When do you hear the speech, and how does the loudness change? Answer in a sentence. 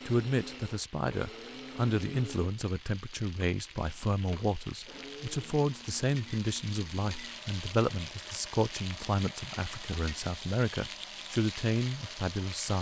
The speech can be heard from 0.1 to 12.7 s, at a steady volume.